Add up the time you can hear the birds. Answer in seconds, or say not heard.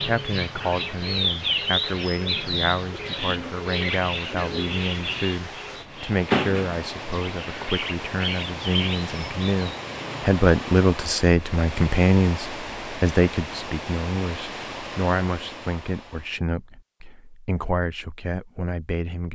10 s.